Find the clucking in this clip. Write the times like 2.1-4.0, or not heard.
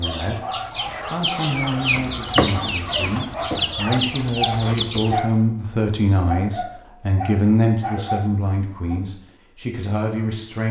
0.0-5.2.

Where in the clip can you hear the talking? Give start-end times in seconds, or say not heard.
0.0-10.6.